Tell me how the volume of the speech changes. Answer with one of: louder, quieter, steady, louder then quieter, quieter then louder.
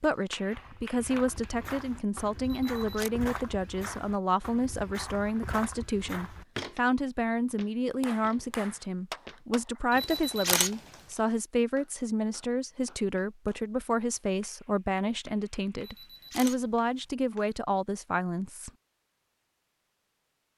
steady.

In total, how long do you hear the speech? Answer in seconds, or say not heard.
19 s.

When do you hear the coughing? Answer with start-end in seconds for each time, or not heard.
not heard.